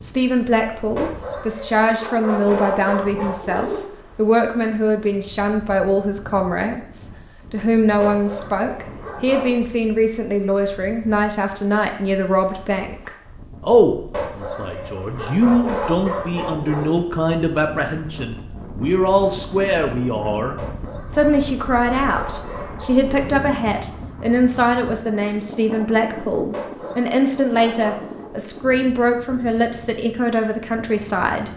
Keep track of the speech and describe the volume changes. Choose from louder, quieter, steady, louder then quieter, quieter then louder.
steady.